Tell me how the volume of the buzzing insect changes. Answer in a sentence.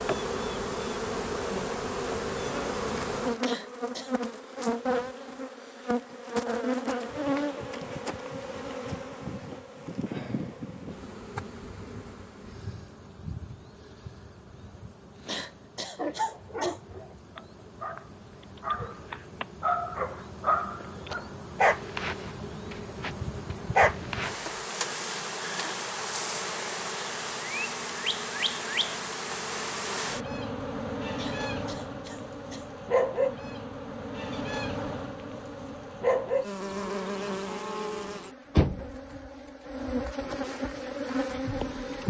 The loudness of the buzzing insect goes down, then up.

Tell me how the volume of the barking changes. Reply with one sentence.
The loudness of the barking goes up.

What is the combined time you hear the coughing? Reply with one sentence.
You can hear the coughing for 4 seconds altogether.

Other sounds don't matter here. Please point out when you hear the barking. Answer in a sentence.
The barking can be heard from 15.9 to 24.5 s.